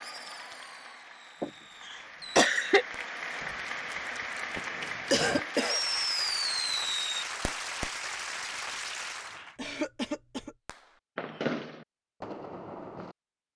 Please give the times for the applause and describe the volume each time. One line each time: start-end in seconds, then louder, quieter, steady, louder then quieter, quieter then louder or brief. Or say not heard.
0.0-9.6 louder.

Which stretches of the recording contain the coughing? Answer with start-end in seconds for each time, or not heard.
1.4-2.9, 4.7-5.8, 9.6-10.6.